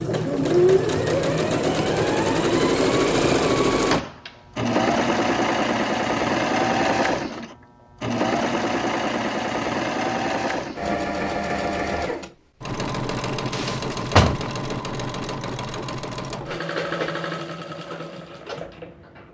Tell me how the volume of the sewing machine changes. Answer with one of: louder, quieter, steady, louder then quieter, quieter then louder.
quieter.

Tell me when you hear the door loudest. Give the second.
14 s.